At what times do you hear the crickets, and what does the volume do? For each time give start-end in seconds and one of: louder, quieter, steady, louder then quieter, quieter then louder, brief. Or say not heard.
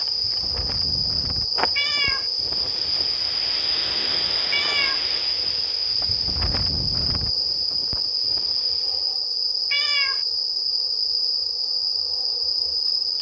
0.0-13.1 steady.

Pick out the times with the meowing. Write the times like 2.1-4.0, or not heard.
1.8-2.2, 4.5-5.0, 9.7-10.2.